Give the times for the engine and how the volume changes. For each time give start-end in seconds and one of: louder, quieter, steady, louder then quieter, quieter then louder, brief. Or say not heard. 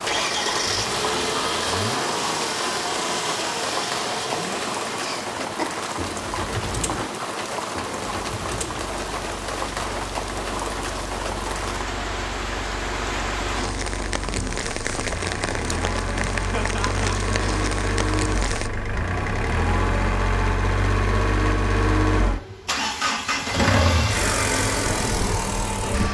0.0-26.1 quieter then louder.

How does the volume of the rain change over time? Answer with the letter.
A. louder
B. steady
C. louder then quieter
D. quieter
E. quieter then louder
B.